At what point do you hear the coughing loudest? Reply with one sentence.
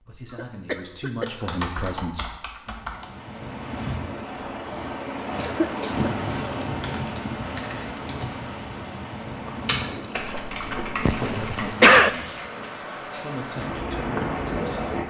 The volume of the coughing peaks at 12 seconds.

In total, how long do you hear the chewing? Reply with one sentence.
You can hear the chewing for 2 seconds altogether.